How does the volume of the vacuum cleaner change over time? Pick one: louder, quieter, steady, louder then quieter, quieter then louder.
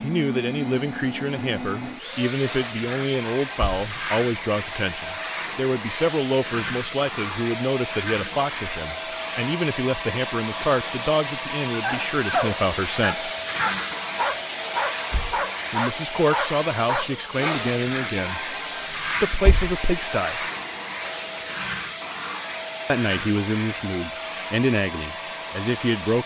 steady.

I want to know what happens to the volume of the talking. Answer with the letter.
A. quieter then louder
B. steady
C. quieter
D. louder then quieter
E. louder
B.